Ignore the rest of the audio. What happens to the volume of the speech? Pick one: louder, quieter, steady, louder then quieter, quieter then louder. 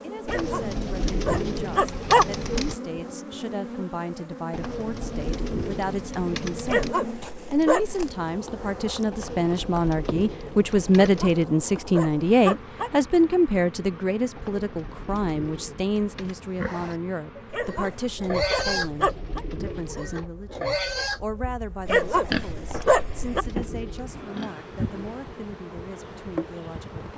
louder then quieter.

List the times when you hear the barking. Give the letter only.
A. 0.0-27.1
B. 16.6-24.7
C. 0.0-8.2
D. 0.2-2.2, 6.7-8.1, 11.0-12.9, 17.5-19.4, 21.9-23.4
D.